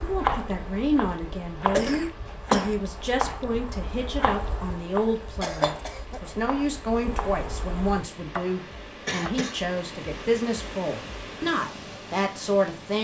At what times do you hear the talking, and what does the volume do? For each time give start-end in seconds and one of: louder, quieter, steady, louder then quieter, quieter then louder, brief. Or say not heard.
0.0-12.9 steady.